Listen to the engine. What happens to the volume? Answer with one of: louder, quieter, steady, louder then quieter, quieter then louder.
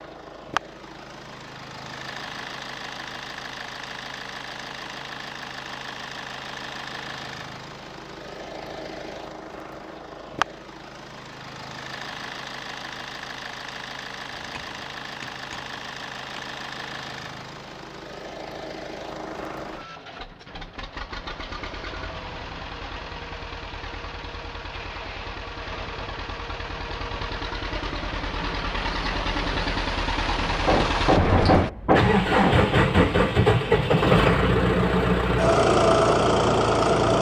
louder.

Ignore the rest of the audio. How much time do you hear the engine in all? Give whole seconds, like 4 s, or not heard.
37 s.